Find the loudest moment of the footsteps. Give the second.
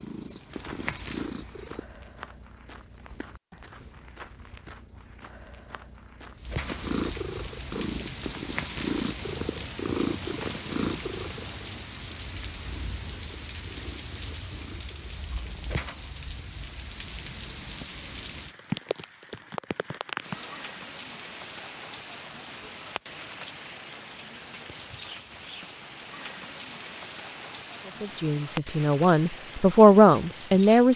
7 s.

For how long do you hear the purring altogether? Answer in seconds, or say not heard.
11 s.